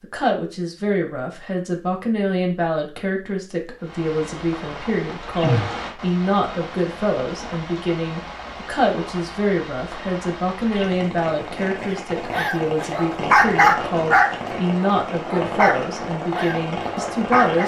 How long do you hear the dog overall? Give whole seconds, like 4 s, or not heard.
6 s.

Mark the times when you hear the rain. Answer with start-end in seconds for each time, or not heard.
3.8-17.6.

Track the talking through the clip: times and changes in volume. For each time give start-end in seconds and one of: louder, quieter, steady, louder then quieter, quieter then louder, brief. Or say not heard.
0.0-17.6 steady.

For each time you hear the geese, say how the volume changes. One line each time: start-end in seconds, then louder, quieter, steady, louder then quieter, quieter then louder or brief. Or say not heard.
not heard.